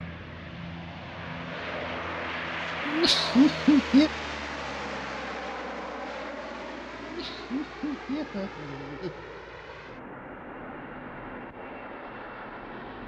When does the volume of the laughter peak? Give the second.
4 s.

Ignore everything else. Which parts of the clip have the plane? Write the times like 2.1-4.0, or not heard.
0.0-13.0.